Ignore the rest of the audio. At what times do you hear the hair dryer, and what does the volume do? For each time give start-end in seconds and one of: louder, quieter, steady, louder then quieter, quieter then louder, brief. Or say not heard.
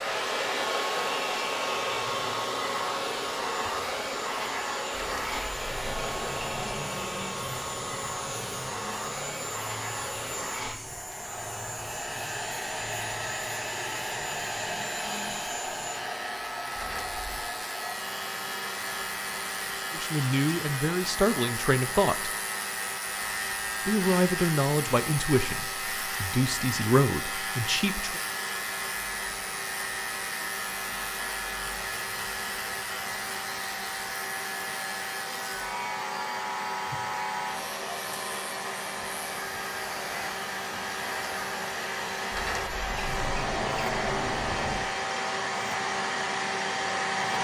0.0-47.4 quieter then louder.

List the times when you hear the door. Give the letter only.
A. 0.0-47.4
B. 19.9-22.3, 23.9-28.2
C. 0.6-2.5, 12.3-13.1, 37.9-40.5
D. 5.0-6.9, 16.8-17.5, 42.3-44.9
D.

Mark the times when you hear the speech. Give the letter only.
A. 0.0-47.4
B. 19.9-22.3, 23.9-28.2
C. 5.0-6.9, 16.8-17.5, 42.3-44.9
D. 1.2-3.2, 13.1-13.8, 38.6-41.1
B.